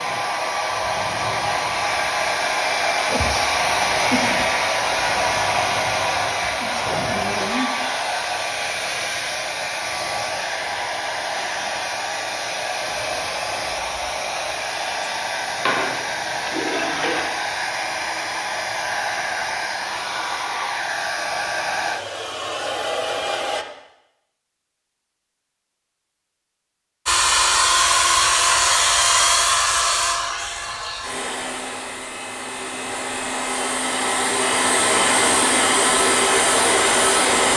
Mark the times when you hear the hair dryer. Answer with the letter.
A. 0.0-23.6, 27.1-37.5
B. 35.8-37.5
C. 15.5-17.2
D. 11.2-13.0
A.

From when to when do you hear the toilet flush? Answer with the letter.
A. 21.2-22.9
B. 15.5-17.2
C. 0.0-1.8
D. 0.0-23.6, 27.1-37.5
B.